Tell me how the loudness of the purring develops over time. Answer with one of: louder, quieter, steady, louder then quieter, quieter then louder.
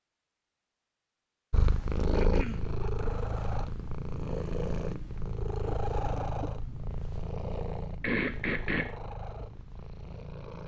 quieter.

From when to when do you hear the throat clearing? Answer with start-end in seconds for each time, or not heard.
2.1-2.8, 8.0-8.9.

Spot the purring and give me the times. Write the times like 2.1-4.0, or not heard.
1.5-10.6.